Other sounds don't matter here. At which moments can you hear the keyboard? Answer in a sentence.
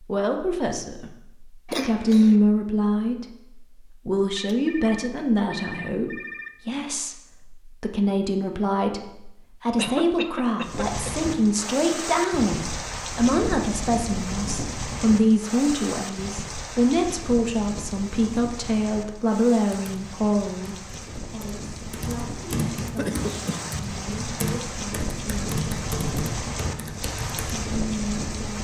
The keyboard can be heard from 19.6 to 27.6 s.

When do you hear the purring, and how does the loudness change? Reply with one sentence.
The purring can't be heard in this clip.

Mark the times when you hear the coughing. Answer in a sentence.
You can hear the coughing from 1.6 to 2.4 s, from 9.8 to 11.2 s and from 22.9 to 23.7 s.